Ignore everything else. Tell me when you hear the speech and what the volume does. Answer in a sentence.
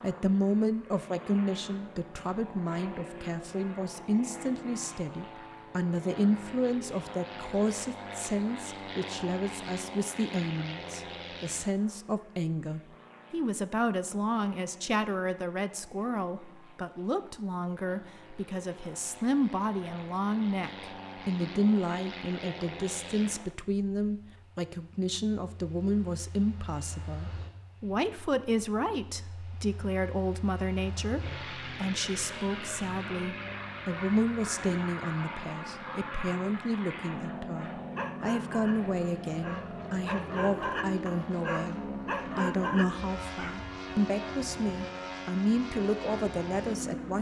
The speech can be heard from 0.0 to 47.1 s, at a steady volume.